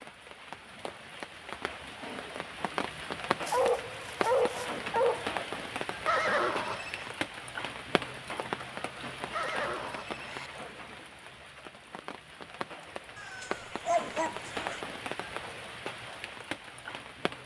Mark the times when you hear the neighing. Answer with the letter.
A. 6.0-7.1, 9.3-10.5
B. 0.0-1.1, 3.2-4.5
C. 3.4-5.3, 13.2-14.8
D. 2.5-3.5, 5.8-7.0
A.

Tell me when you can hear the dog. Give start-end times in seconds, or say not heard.
3.4-5.3, 13.2-14.8.